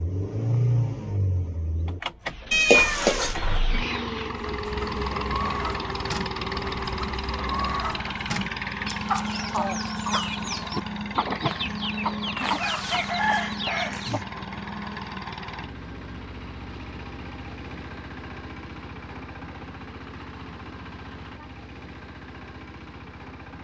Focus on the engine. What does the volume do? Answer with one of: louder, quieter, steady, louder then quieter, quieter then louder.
quieter.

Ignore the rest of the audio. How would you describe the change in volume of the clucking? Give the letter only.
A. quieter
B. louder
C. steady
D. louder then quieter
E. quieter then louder
B.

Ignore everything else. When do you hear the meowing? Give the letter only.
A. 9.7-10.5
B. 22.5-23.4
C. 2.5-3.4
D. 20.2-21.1
C.